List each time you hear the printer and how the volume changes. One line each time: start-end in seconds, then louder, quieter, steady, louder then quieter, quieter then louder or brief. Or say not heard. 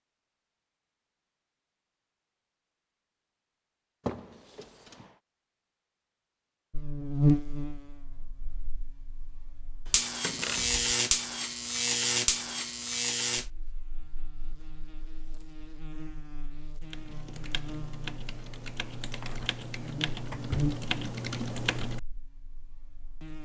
not heard.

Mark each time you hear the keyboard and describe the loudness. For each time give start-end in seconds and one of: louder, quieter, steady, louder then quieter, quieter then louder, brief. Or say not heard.
16.8-22.0 louder.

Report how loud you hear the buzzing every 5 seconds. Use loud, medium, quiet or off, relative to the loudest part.
off, loud, loud, quiet, medium.